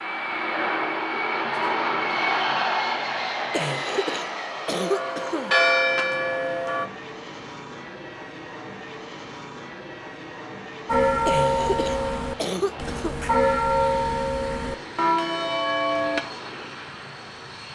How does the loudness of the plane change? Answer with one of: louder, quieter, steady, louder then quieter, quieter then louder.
quieter.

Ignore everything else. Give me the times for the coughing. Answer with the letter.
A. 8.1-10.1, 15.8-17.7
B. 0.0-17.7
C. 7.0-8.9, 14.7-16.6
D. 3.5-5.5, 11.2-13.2
D.